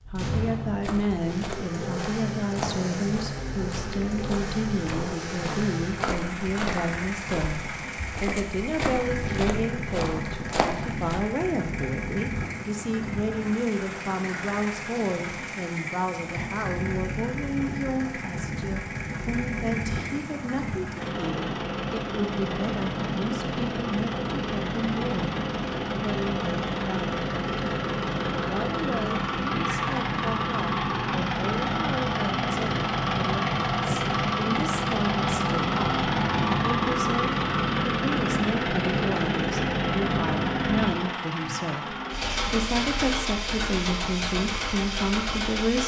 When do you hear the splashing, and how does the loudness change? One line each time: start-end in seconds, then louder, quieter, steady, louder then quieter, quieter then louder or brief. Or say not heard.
not heard.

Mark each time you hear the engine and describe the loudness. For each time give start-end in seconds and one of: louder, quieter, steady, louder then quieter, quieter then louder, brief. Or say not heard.
0.0-45.8 louder.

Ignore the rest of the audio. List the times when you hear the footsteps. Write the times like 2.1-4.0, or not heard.
0.8-11.2.